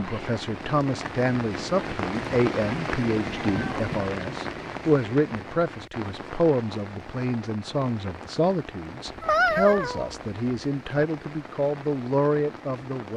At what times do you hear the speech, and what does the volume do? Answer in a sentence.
The speech can be heard from 0.0 to 13.1 s, at a steady volume.